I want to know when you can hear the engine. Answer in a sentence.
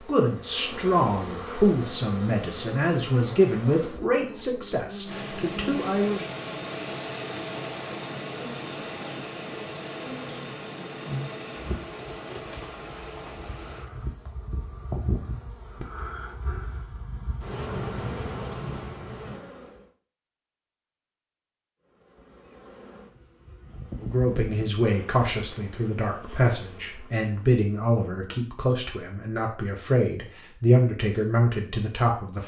The engine can be heard from 5.0 to 13.9 s.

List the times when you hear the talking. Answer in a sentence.
The talking can be heard from 0.0 to 6.3 s and from 24.0 to 32.4 s.